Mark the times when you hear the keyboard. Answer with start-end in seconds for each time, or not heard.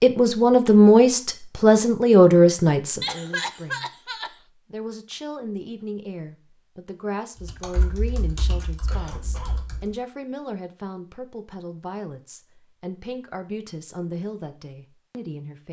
7.4-9.9.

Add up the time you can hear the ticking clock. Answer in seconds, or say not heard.
not heard.